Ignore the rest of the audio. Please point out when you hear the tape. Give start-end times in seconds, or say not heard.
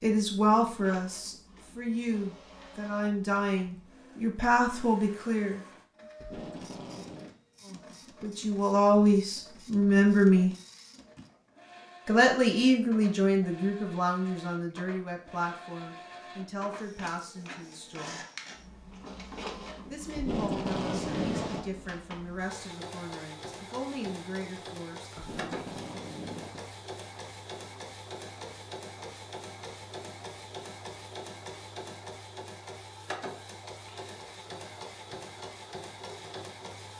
6.2-7.3, 20.1-21.7, 25.1-26.7.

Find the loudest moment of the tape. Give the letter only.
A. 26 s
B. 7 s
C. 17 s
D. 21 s
D.